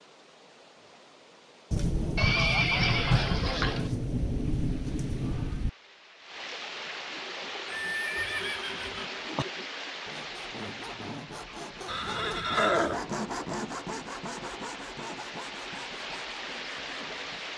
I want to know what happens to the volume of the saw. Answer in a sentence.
The volume of the saw goes up, then down.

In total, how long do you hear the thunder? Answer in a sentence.
You can hear the thunder for 4 seconds altogether.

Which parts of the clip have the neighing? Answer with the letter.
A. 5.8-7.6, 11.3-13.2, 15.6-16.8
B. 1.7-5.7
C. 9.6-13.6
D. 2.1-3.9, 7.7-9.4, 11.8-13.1
D.